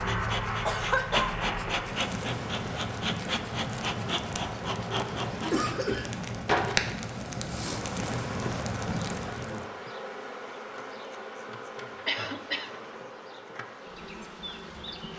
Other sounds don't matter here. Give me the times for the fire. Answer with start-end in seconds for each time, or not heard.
0.0-9.7.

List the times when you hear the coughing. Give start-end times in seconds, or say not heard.
0.7-1.4, 5.4-6.2, 12.1-12.7.